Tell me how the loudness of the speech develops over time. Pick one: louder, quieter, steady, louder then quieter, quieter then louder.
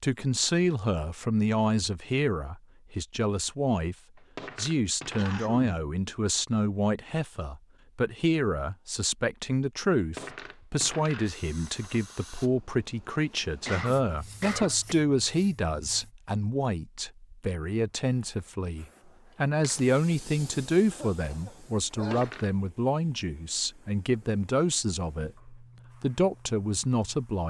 steady.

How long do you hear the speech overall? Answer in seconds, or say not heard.
27 s.